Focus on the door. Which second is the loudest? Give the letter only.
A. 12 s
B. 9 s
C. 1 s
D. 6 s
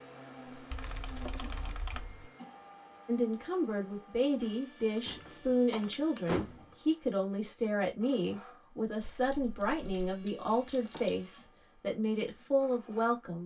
D.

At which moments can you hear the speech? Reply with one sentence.
You can hear the speech from 3.0 to 13.4 s.